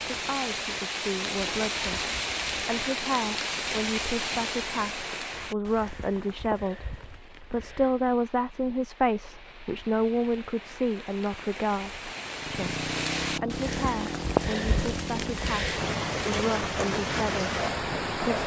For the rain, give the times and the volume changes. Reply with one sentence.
The rain can be heard from 0.0 to 18.4 s, getting quieter then louder.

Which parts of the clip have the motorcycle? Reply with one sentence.
The motorcycle can be heard from 12.3 to 15.9 s.